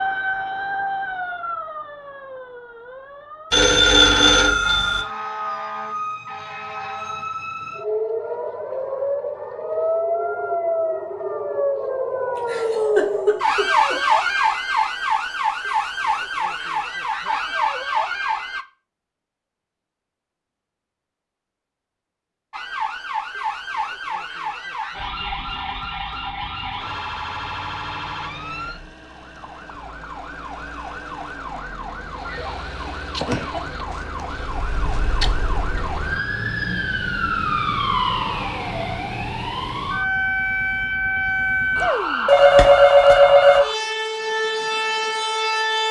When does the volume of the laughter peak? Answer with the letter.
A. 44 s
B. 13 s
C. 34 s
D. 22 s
B.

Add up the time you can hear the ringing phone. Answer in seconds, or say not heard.
3 s.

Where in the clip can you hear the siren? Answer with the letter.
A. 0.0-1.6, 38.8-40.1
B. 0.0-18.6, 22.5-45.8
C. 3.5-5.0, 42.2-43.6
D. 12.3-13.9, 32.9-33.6
B.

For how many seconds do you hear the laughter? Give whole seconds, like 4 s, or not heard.
2 s.